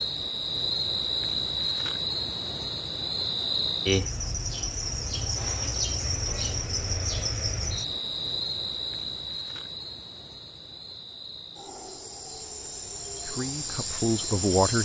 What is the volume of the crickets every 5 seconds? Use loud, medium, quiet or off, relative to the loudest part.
loud, loud, medium.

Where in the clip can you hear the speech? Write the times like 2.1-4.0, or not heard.
13.2-14.8.